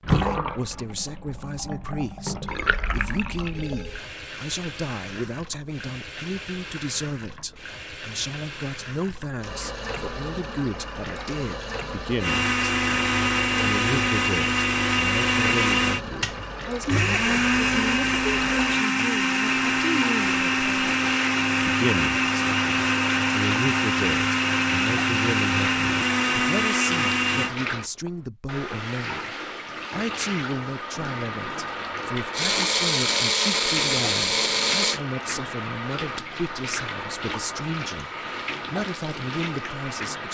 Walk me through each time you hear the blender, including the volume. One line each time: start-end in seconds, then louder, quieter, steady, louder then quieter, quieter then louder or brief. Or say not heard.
12.2-27.6 steady
32.3-35.0 brief.